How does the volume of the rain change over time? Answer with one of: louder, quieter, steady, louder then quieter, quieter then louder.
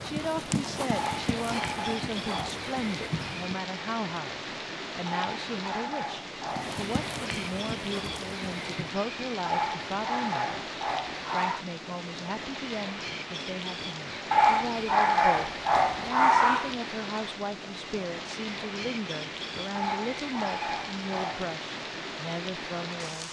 steady.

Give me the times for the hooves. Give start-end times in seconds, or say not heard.
0.0-3.5, 6.5-8.9.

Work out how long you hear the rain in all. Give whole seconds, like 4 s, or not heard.
23 s.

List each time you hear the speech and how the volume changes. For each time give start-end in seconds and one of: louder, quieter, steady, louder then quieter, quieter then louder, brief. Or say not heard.
0.0-10.7 steady
11.2-23.2 steady.